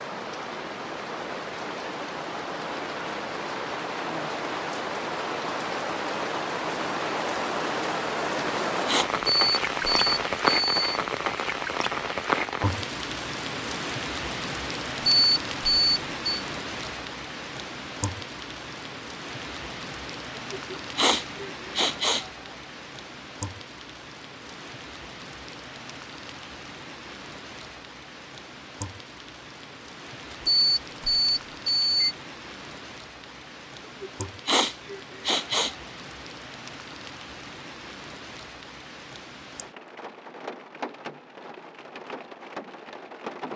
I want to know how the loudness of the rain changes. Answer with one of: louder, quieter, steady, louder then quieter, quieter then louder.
quieter.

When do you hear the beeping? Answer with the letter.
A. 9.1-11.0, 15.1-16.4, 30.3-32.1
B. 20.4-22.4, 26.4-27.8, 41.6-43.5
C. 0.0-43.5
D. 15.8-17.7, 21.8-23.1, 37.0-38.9
A.